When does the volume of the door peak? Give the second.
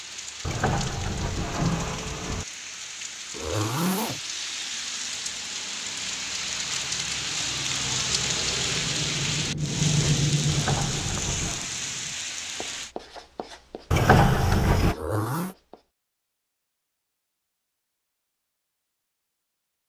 14 s.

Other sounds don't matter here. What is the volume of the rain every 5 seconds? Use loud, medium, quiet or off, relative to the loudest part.
medium, loud, loud, off.